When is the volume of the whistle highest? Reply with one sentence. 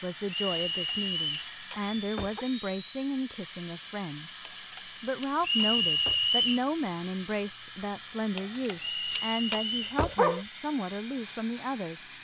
The loudest moment of the whistle is at 6 seconds.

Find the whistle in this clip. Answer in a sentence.
You can hear the whistle from 0.2 to 1.5 s, from 5.4 to 6.6 s and from 8.8 to 9.9 s.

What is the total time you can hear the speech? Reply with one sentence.
The speech can be heard for 12 seconds in total.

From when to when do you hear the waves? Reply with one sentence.
You can't hear the waves here.